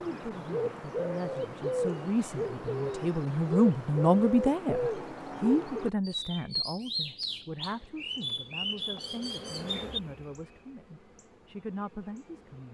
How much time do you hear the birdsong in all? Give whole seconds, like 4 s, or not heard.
10 s.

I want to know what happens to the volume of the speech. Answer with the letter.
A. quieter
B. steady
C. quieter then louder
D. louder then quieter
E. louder
D.